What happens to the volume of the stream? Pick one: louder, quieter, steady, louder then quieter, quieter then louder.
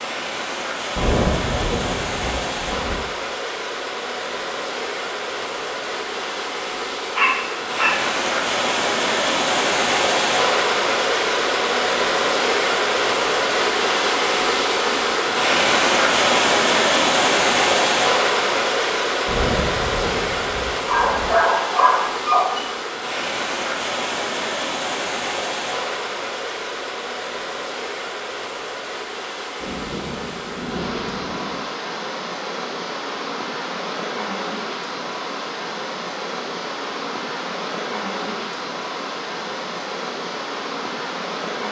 louder then quieter.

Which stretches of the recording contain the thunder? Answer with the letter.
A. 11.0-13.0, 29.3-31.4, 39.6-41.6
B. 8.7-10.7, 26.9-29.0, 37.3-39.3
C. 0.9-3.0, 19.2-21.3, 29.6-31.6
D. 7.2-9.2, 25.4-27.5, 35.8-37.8
C.